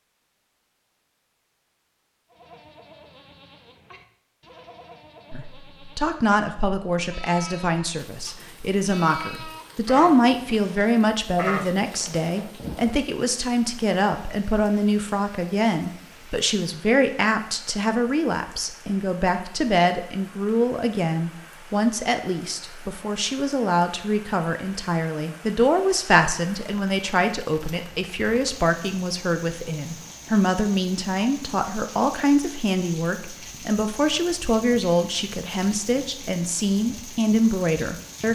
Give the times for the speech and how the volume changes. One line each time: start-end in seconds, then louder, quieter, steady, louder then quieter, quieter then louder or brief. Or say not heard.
5.3-38.3 steady.